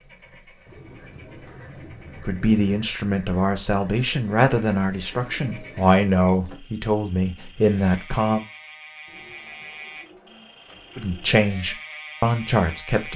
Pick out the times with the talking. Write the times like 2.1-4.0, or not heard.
2.2-8.4, 10.9-13.1.